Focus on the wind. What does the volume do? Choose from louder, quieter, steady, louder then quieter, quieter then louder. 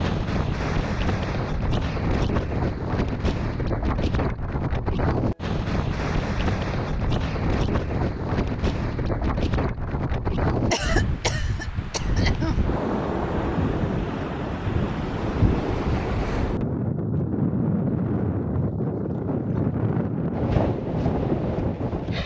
steady.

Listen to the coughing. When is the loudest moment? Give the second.
11 s.